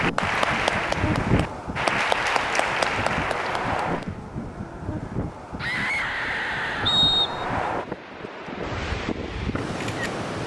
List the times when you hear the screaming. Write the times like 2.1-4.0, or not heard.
5.5-7.0.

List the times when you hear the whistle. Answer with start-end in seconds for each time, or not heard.
6.8-7.5.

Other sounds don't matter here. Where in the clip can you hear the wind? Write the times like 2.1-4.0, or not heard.
0.0-10.4.